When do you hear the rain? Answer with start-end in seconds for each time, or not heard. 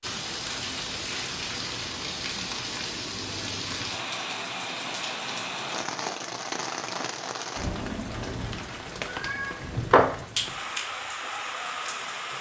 0.0-12.3.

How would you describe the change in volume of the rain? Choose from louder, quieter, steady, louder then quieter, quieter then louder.
steady.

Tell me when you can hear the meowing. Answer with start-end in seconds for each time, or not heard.
9.1-10.2.